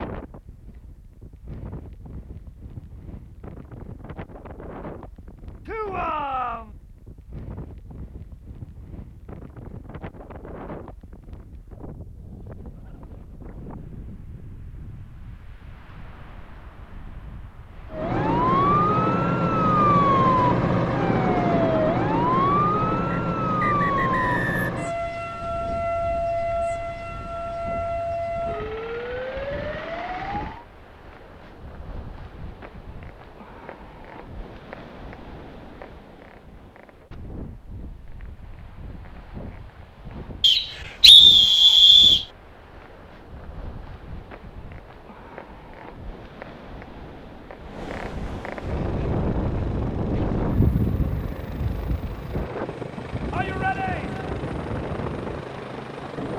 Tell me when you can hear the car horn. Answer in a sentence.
The car horn can't be heard in this clip.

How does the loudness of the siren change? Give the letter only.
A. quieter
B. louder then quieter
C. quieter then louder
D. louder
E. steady
A.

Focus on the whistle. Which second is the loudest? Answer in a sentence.
The loudest moment of the whistle is at 41 seconds.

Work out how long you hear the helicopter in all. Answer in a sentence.
You can hear the helicopter for 8 seconds altogether.